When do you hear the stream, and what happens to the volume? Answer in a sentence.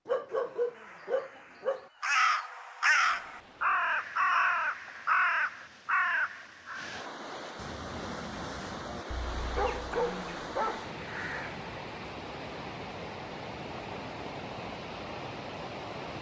The stream can be heard from 3.0 to 16.1 s, getting louder.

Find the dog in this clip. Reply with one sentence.
The dog can be heard from 0.1 to 1.9 s and from 9.1 to 10.9 s.